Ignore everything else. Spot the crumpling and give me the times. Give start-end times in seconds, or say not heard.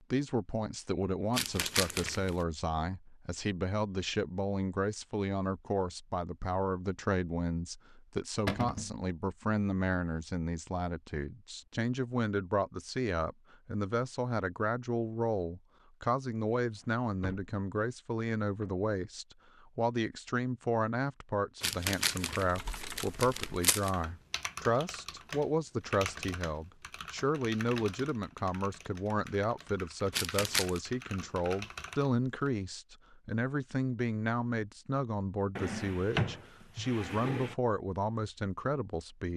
1.3-2.4, 21.6-23.9, 30.1-30.8.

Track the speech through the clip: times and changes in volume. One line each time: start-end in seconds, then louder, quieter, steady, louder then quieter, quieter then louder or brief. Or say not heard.
0.1-39.3 steady.